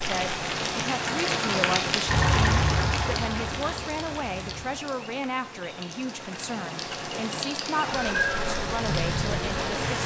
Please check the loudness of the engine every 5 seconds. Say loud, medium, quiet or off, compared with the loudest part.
loud, off.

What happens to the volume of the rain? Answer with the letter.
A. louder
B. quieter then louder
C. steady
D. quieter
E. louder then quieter
B.